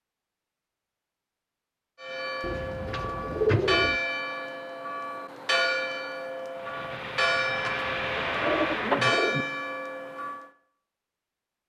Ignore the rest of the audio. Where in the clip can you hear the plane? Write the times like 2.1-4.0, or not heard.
6.5-9.2.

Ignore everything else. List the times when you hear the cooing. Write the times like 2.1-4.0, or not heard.
2.4-4.0, 8.3-9.4.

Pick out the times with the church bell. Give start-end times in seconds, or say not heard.
2.0-10.5.